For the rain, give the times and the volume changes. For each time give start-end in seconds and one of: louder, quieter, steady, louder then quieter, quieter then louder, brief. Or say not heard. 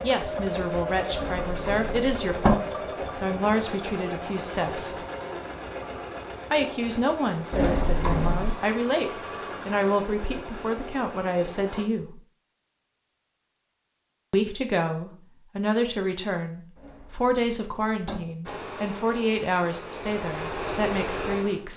not heard.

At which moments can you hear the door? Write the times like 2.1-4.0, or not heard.
1.1-2.5, 7.5-8.6, 16.8-18.2.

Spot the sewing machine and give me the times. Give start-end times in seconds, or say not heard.
0.0-11.8, 18.4-21.7.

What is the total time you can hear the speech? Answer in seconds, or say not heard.
18 s.